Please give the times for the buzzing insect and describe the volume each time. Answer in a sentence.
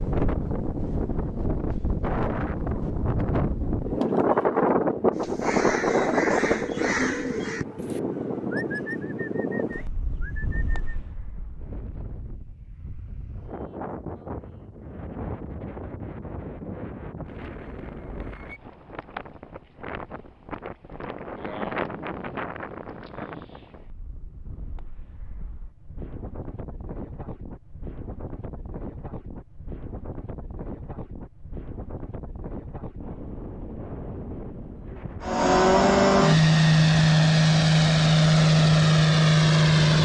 The buzzing insect can't be heard in this clip.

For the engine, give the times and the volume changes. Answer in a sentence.
You can hear the engine from 35.2 to 40.0 s, at a steady volume.